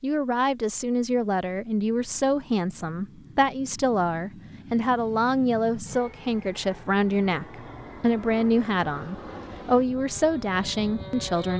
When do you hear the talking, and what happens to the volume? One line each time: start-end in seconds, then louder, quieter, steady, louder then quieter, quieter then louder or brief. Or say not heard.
0.0-11.5 steady.